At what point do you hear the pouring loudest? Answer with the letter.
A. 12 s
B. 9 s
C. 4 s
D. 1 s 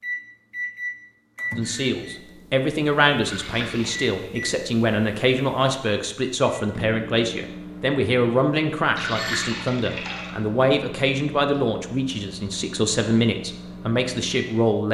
B.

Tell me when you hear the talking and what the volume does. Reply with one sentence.
The talking can be heard from 1.6 to 14.9 s, at a steady volume.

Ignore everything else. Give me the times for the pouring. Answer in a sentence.
You can hear the pouring from 3.2 to 4.1 s and from 8.9 to 10.3 s.